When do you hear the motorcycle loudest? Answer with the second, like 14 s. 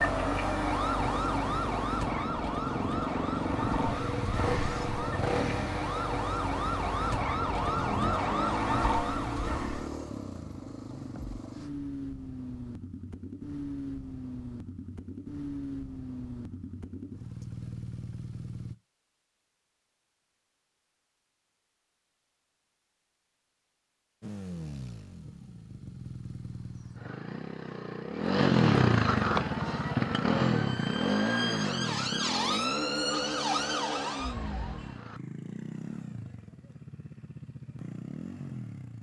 29 s.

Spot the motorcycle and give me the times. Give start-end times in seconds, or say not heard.
0.0-18.8, 24.2-38.9.